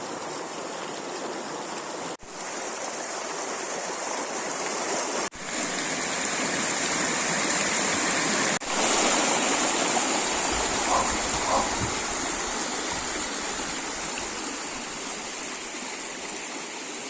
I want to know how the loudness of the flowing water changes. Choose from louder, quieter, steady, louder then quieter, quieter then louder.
louder then quieter.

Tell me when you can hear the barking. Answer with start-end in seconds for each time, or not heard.
10.7-12.0.